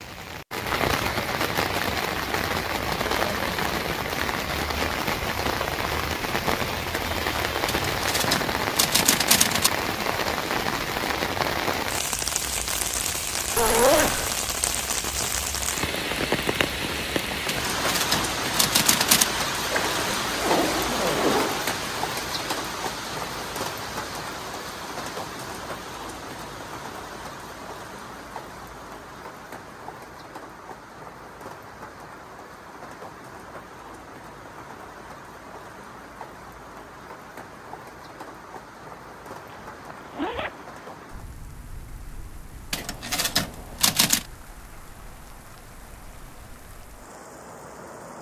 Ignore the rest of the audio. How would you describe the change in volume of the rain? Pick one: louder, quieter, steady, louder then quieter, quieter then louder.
quieter.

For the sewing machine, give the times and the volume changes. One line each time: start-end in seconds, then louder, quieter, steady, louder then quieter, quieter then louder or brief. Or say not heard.
not heard.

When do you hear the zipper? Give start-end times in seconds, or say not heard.
13.6-14.3, 19.7-21.7, 39.5-41.0.